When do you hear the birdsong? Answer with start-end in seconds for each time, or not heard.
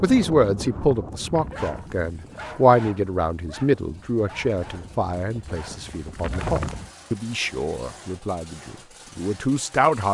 not heard.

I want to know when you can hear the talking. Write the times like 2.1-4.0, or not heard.
0.0-10.1.